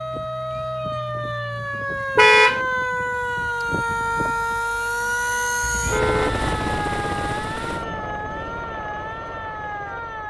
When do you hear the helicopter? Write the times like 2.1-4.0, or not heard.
0.0-10.2.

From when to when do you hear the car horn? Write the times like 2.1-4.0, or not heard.
2.1-2.6, 5.6-6.5.